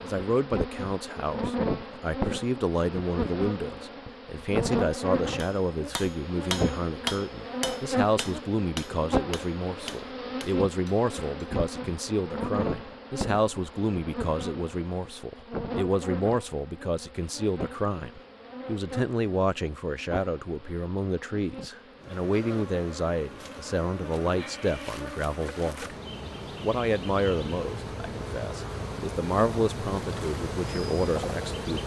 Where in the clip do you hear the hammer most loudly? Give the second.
7 s.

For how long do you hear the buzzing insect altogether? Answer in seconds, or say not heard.
32 s.